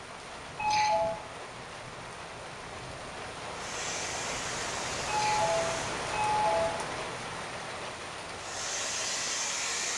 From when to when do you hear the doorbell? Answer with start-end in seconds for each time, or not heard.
0.6-1.2, 5.0-6.8.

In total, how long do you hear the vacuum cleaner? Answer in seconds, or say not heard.
4 s.